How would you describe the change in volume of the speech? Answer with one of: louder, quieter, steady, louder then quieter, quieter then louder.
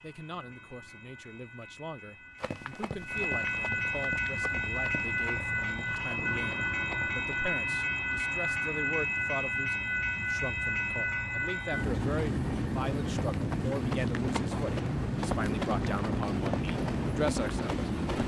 louder.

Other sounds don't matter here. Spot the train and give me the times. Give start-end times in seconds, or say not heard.
0.0-18.2.